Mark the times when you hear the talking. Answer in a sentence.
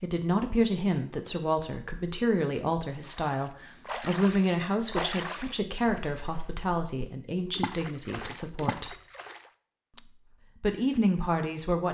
You can hear the talking from 0.0 to 8.9 s and from 10.0 to 11.8 s.